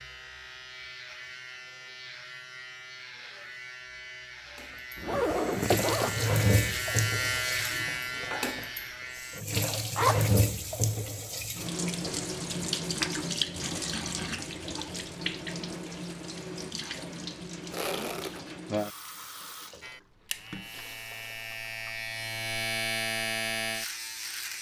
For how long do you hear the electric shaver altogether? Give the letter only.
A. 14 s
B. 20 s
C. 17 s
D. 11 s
A.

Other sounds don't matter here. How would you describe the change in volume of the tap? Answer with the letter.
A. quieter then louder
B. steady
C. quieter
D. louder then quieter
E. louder
C.